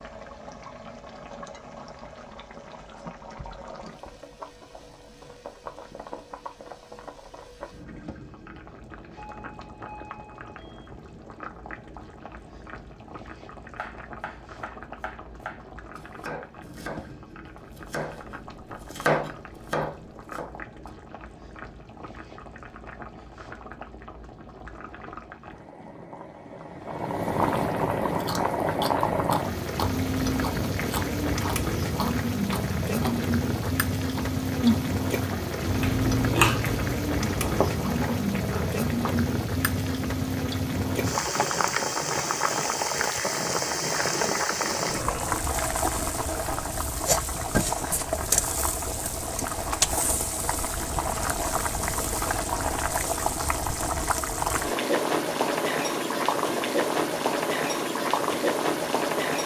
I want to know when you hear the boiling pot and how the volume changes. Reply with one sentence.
You can hear the boiling pot from 0.0 to 59.4 s, getting louder.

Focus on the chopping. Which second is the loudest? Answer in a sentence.
The volume of the chopping peaks at 19 seconds.